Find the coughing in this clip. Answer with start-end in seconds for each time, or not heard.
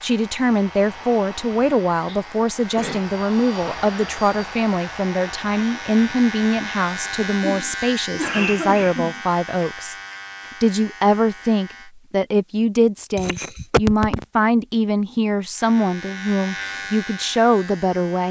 2.0-3.0, 7.4-9.2, 13.2-14.2.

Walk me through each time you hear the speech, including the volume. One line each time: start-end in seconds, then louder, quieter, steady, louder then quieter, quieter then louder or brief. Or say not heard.
0.0-9.9 steady
10.6-18.2 steady.